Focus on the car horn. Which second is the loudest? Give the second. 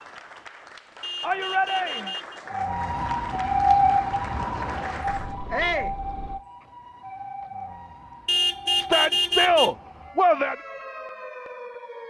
9 s.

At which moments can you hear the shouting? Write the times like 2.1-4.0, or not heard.
1.2-2.1, 5.5-6.0, 8.8-10.6.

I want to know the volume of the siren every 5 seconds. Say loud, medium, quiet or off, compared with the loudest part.
loud, quiet, quiet.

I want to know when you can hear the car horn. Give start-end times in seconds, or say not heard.
1.0-2.4, 5.0-6.4, 8.2-9.7.